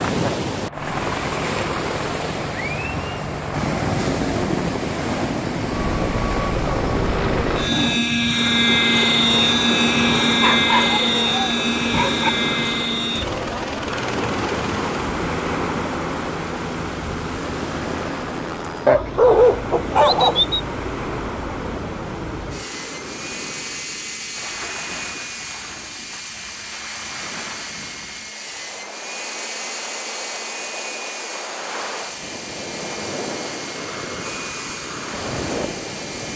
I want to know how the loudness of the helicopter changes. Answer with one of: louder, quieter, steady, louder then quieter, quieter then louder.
louder then quieter.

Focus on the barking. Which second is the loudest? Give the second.
19 s.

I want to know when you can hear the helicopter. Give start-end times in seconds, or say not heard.
0.0-36.3.